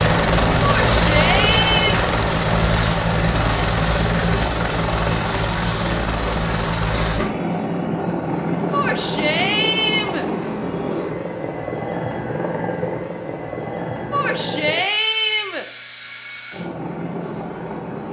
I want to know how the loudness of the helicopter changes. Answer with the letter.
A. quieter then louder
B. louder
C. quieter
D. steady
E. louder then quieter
C.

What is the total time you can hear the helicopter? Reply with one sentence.
You can hear the helicopter for 18 seconds altogether.